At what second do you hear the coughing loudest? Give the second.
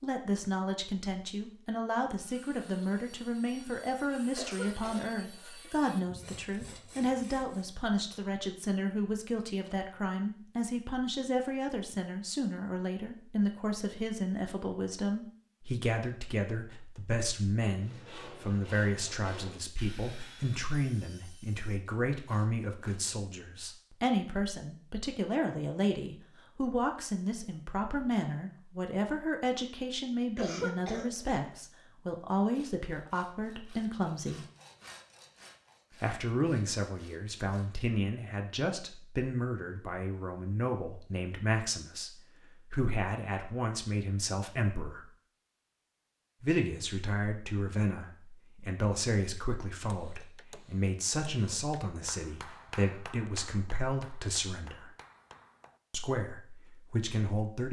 31 s.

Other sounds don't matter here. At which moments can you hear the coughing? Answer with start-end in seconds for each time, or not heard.
4.3-5.7, 30.4-31.4.